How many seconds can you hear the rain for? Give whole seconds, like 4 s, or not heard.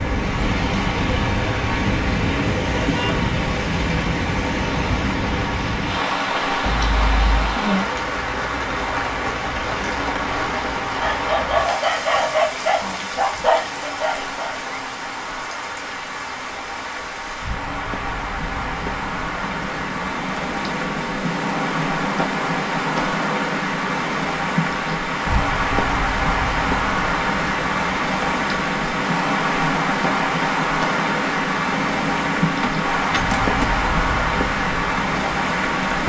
36 s.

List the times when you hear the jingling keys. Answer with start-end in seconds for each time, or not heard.
6.6-7.6, 31.7-33.6.